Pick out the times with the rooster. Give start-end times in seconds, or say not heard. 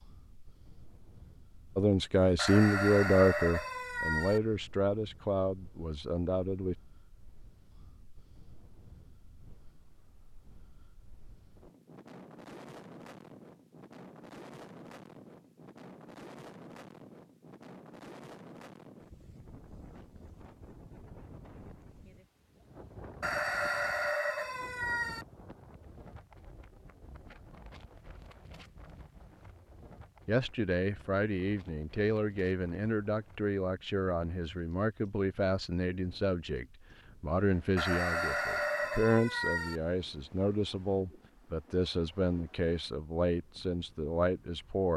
2.4-4.4, 23.2-25.2, 37.8-39.8.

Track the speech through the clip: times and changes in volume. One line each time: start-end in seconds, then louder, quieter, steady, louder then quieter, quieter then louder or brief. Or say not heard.
1.8-6.8 quieter
30.2-44.9 steady.